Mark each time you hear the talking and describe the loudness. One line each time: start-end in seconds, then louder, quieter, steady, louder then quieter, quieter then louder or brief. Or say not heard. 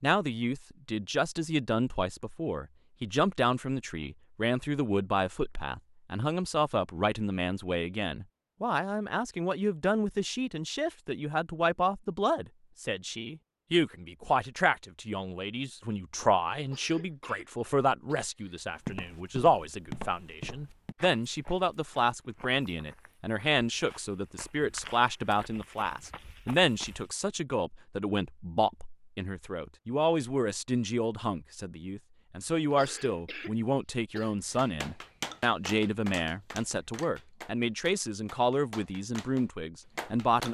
0.0-40.4 steady.